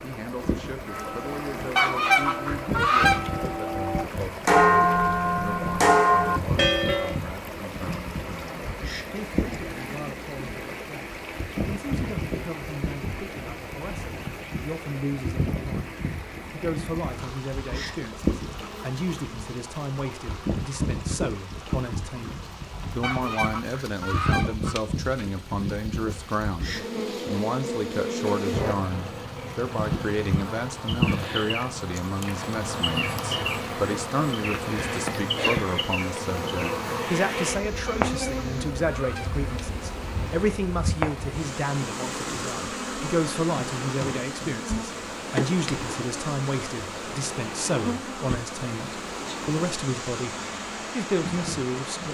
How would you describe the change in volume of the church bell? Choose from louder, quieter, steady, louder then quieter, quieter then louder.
louder.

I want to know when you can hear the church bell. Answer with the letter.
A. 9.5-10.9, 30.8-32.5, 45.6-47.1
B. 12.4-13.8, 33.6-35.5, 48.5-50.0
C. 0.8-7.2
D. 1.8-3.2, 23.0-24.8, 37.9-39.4
C.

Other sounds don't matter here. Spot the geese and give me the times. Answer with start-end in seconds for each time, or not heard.
1.8-3.2, 23.0-24.8, 37.9-39.4.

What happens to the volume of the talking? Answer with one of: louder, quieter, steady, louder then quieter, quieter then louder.
louder.